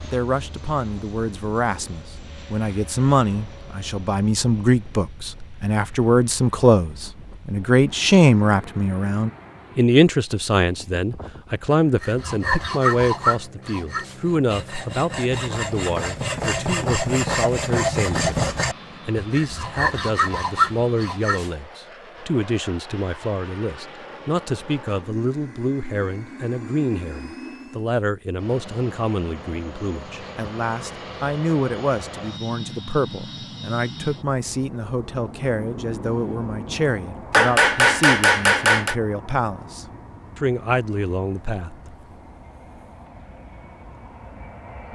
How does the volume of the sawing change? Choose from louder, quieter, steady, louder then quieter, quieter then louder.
quieter then louder.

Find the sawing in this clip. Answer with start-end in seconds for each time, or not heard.
12.0-21.5.